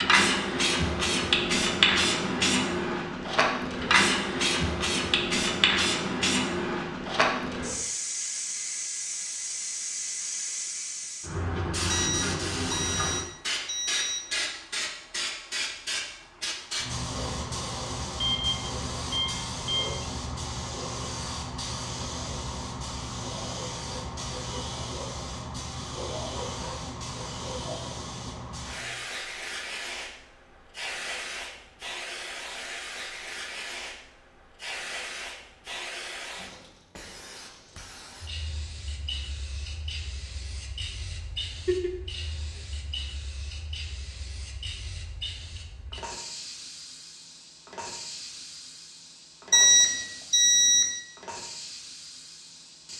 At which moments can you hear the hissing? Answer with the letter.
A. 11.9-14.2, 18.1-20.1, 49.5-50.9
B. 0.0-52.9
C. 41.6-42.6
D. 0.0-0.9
B.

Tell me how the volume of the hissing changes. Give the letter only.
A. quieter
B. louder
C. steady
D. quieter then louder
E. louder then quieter
A.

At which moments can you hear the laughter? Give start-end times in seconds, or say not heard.
41.6-42.6.